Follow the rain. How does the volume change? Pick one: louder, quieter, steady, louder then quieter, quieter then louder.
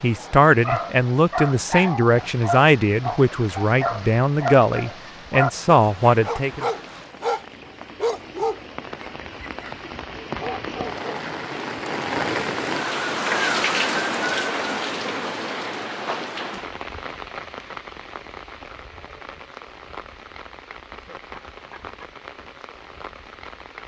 louder then quieter.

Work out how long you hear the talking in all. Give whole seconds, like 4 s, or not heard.
7 s.